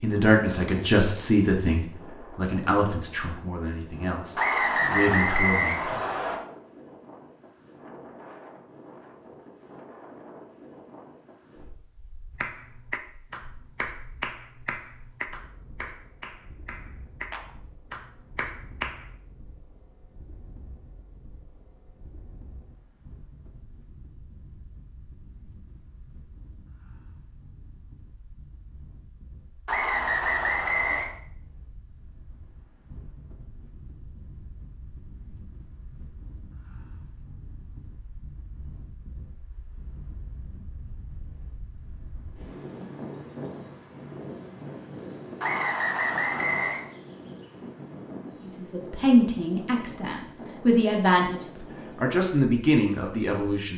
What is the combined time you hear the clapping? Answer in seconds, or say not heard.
7 s.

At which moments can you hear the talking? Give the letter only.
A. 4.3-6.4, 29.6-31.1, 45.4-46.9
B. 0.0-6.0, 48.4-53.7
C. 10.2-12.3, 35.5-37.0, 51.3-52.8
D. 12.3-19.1
B.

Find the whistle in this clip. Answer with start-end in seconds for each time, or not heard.
4.3-6.4, 29.6-31.1, 45.4-46.9.